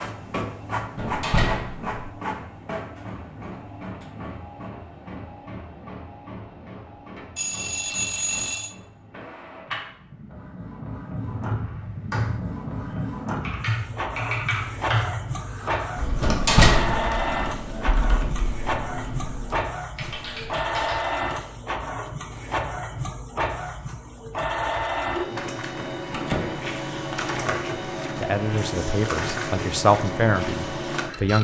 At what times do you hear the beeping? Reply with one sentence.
You can hear the beeping from 7.3 to 8.8 s.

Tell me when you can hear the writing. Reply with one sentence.
The writing can't be heard in this clip.